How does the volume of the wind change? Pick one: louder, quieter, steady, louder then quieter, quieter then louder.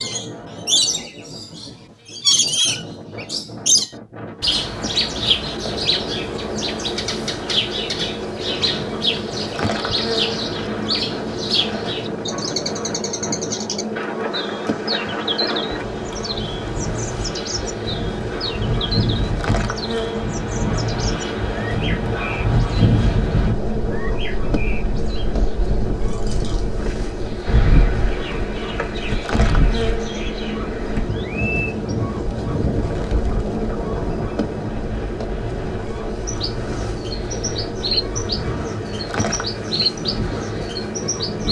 louder then quieter.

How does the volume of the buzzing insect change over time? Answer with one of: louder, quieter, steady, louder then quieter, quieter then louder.
steady.